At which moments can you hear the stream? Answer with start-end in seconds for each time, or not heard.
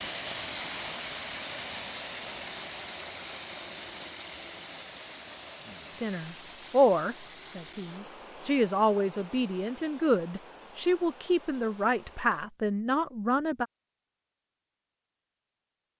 0.0-12.5.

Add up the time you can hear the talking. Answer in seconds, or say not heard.
8 s.